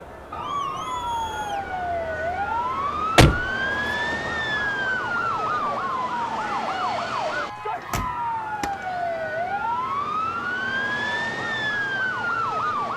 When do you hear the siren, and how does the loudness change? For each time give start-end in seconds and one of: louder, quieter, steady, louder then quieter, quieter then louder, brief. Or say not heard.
0.0-12.9 steady.